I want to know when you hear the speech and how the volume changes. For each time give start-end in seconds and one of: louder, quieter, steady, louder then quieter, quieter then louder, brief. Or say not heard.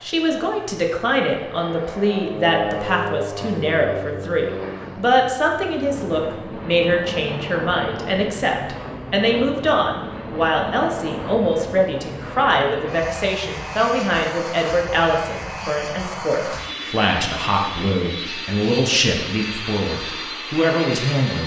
0.0-21.4 steady.